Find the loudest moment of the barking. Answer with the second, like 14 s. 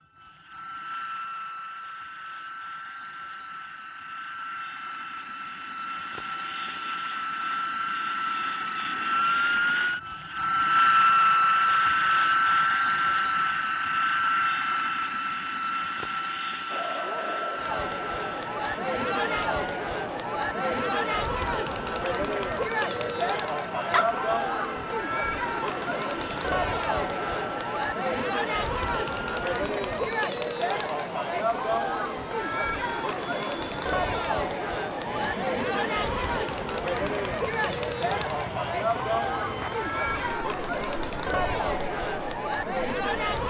24 s.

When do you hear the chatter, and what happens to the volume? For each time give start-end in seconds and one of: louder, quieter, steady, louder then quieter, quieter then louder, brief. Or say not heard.
16.6-43.4 steady.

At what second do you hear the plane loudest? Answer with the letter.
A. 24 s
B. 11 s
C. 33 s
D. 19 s
B.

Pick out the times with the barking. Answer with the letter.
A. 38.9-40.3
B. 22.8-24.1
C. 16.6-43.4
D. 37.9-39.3
B.